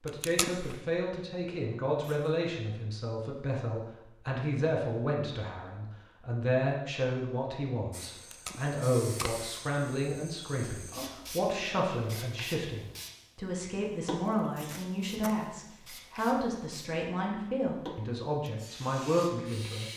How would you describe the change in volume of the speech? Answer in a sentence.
The volume of the speech stays about the same.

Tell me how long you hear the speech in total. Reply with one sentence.
The speech can be heard for 20 seconds in total.